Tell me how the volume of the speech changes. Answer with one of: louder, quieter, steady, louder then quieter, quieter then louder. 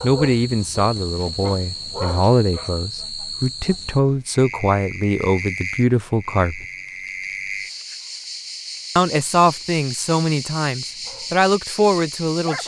steady.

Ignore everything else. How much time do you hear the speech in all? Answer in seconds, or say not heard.
10 s.